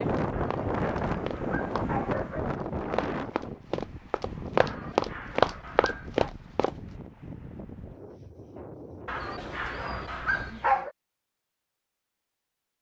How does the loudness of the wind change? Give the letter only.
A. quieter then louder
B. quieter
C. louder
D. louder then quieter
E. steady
B.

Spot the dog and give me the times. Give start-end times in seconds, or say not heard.
0.3-2.5, 4.6-6.3, 9.1-10.9.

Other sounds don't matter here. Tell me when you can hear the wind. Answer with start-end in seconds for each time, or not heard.
0.0-10.6.